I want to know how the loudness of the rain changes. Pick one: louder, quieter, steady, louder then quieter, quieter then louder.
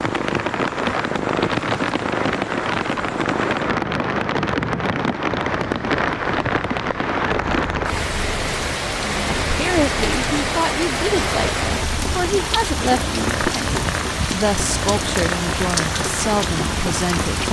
steady.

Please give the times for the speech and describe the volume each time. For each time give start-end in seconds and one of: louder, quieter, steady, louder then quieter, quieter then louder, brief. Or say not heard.
9.5-17.4 steady.